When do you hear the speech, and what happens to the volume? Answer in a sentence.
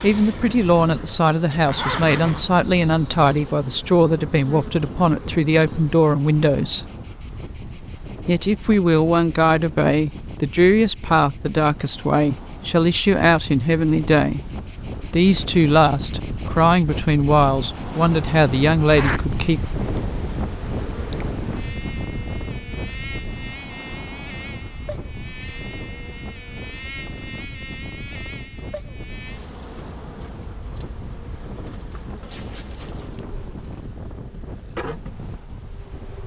You can hear the speech from 0.0 to 6.8 s, at a steady volume; and from 8.2 to 19.6 s, at a steady volume.